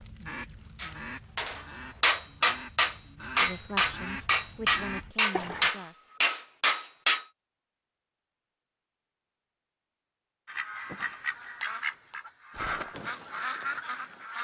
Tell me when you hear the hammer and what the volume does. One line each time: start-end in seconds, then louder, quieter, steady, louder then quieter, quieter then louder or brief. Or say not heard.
0.8-7.2 steady.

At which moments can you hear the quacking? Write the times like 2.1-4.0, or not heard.
0.0-5.7, 10.4-14.3.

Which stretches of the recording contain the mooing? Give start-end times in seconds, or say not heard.
not heard.